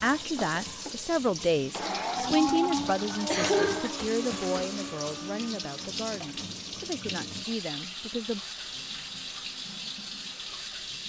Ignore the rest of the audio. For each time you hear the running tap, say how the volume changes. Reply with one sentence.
The running tap can be heard from 0.0 to 11.0 s, at a steady volume.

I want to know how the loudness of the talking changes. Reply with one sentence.
The volume of the talking goes down.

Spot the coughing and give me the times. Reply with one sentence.
You can hear the coughing from 2.3 to 4.4 s.